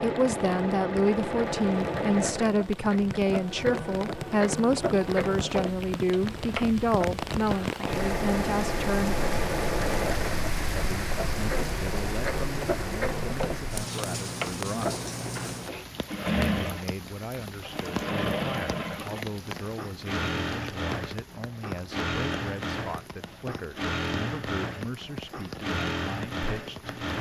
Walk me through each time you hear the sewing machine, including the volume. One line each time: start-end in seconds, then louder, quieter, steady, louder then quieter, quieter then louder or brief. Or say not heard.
0.0-27.1 steady.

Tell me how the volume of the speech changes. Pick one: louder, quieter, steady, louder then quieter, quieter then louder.
quieter.